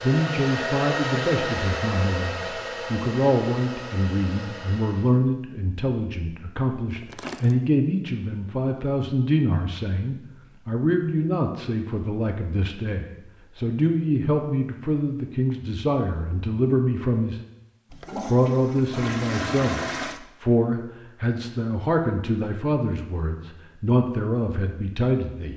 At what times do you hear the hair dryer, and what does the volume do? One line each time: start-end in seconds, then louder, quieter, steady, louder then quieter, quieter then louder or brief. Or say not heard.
0.0-5.2 quieter.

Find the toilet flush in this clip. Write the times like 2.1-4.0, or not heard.
7.0-7.5, 17.9-20.2.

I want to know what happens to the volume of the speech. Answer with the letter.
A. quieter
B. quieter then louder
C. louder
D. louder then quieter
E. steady
E.